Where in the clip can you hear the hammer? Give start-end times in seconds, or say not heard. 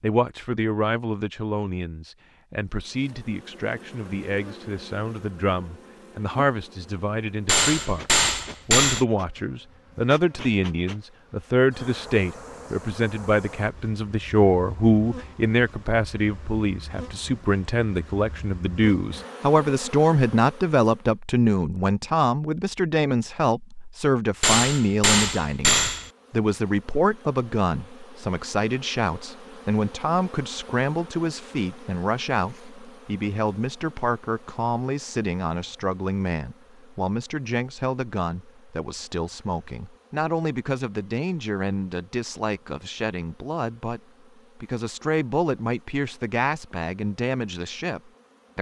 7.5-9.1, 24.4-26.1.